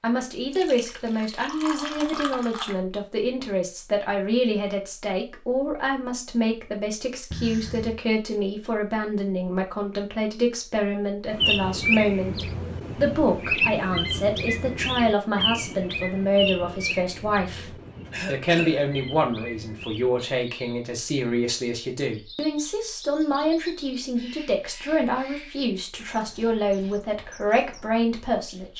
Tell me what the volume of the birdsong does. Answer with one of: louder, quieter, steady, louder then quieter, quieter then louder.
quieter.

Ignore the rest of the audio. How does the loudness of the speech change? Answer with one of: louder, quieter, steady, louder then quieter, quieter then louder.
steady.